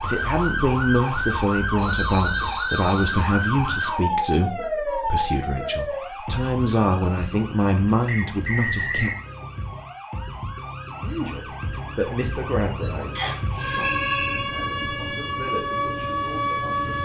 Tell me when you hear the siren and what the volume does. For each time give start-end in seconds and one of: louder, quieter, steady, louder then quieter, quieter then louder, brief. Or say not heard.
0.0-17.0 quieter then louder.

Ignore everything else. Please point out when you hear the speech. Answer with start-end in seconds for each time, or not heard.
0.0-9.1, 11.0-16.9.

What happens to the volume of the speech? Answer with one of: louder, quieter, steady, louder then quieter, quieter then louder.
quieter.